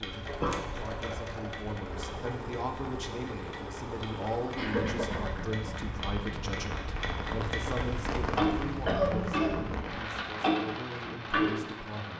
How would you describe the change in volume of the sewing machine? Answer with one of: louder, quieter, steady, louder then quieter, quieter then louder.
steady.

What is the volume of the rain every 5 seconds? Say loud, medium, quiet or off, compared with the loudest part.
medium, loud, loud.